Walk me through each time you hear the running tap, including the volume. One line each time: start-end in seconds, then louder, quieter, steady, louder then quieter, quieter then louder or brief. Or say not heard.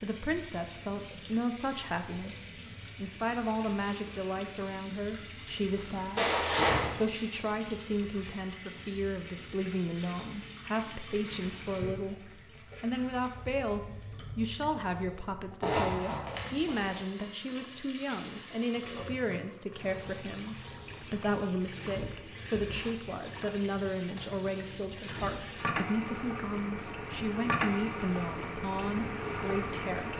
0.0-30.1 louder.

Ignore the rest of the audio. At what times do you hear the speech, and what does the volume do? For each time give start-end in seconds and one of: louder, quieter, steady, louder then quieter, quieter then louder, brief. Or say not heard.
0.0-30.1 steady.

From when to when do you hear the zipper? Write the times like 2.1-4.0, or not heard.
6.2-6.9, 15.6-17.0.